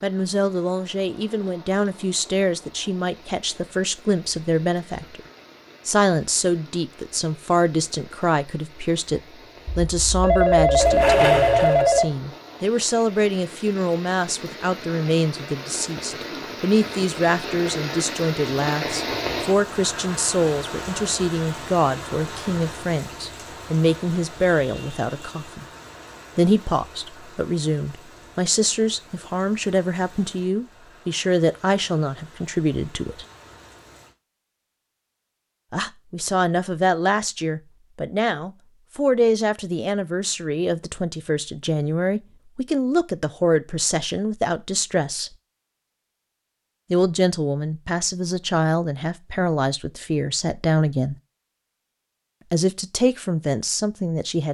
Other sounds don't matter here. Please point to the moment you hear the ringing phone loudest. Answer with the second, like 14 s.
11 s.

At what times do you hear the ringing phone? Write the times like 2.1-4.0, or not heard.
9.7-12.1.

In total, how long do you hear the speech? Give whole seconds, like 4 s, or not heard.
48 s.